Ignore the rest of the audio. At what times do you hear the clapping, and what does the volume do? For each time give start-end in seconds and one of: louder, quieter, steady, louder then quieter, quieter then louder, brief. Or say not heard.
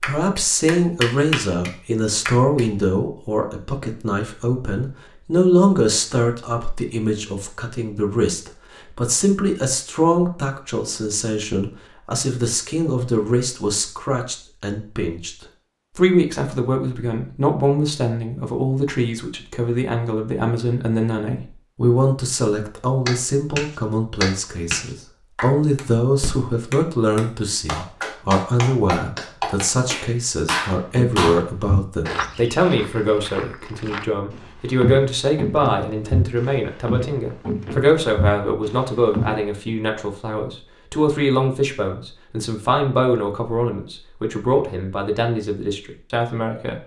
0.0-2.6 brief
23.1-31.4 quieter then louder.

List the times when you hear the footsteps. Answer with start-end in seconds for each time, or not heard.
30.9-39.4.